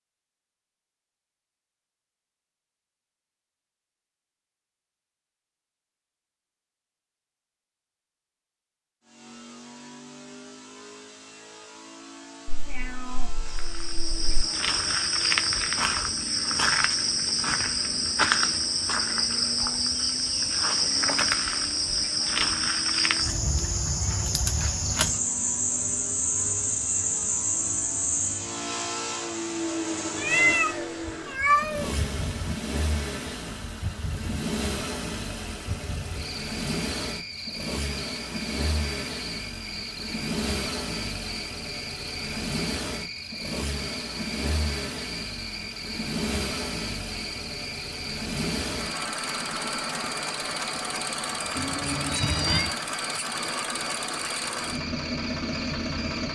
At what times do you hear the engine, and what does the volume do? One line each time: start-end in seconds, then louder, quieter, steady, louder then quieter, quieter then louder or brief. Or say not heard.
9.0-56.2 louder.